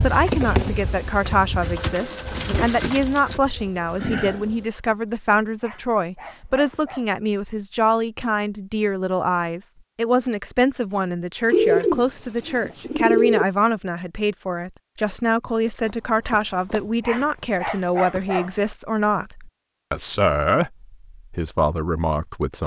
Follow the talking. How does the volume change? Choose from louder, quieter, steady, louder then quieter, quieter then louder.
steady.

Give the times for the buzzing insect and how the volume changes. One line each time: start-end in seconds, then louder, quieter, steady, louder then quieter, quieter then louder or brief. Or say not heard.
0.0-4.7 quieter then louder.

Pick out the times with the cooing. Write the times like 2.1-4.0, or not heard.
1.6-3.4, 11.5-13.4.